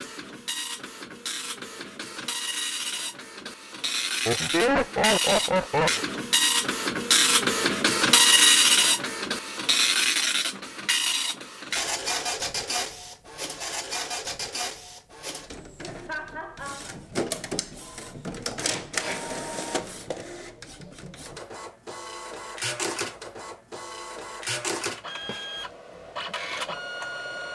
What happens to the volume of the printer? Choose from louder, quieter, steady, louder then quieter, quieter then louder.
louder then quieter.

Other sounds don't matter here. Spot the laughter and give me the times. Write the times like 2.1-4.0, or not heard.
4.2-6.0, 16.1-16.9.